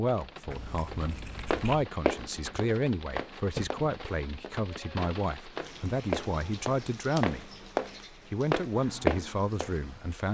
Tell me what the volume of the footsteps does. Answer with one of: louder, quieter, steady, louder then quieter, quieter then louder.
quieter then louder.